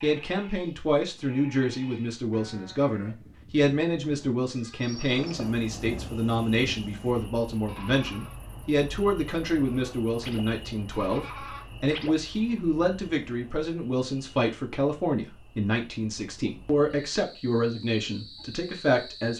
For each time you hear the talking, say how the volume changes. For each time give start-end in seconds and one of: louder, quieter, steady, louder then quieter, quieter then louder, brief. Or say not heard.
0.0-19.3 steady.